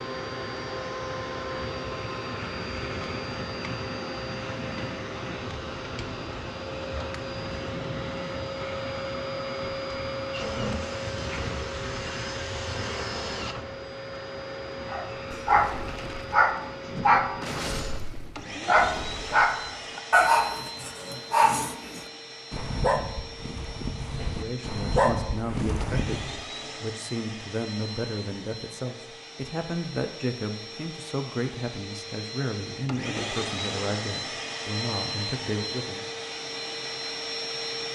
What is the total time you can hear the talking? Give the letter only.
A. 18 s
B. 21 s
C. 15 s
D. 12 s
D.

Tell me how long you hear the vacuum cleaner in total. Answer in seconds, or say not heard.
38 s.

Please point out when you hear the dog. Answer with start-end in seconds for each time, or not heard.
14.9-26.4.